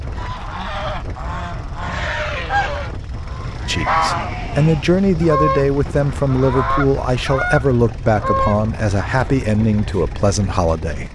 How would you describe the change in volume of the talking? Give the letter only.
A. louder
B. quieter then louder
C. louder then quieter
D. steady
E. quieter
D.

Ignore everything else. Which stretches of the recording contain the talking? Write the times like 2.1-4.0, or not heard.
3.6-11.1.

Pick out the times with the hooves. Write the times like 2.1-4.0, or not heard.
not heard.